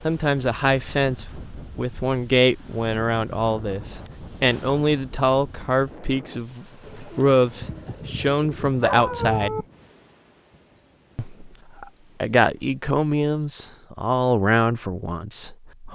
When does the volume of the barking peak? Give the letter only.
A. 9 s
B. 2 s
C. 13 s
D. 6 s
A.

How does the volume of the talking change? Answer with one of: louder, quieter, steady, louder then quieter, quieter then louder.
steady.